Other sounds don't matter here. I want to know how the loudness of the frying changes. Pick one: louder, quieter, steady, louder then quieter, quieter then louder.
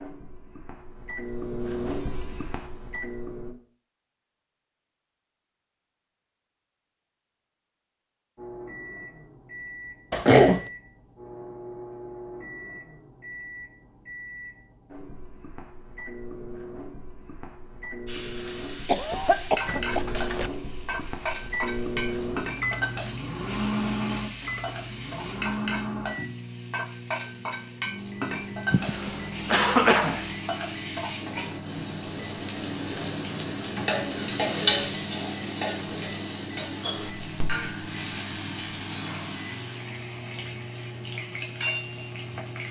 louder then quieter.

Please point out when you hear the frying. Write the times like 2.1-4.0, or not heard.
18.1-42.6.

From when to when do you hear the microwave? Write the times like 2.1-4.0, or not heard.
0.0-3.5, 8.3-42.6.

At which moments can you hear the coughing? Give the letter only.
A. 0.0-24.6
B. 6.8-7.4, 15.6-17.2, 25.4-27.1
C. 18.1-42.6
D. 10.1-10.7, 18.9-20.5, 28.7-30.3
D.